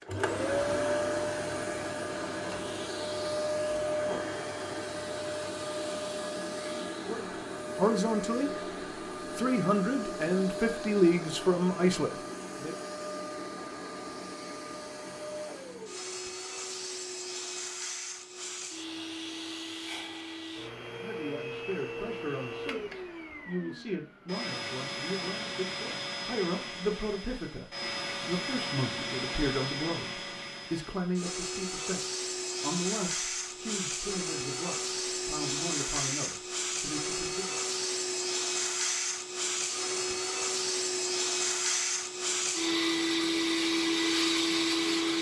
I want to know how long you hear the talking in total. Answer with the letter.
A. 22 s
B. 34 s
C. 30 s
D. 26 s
A.